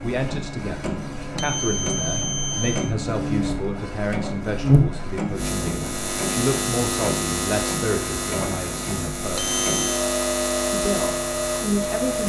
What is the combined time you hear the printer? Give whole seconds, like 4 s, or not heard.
12 s.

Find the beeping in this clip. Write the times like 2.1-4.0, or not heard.
1.4-3.0, 9.3-10.0.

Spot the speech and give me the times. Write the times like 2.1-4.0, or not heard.
0.0-9.6, 10.7-12.2.